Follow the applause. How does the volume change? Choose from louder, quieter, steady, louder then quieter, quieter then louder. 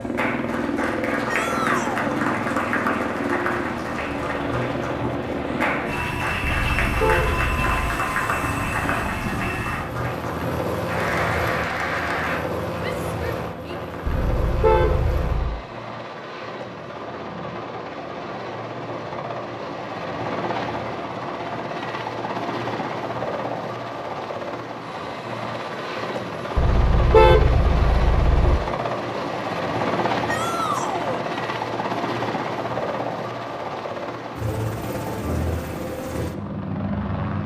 steady.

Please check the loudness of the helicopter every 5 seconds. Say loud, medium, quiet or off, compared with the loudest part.
loud, loud, loud, medium, loud, loud, loud, loud.